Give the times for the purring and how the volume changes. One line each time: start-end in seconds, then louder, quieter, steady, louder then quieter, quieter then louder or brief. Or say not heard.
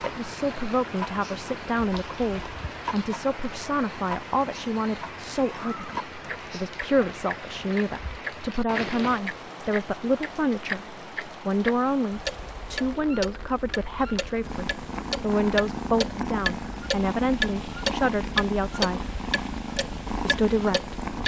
14.4-21.2 steady.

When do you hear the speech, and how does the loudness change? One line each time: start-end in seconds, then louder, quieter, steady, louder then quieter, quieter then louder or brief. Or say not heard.
0.0-19.1 steady
20.2-21.2 brief.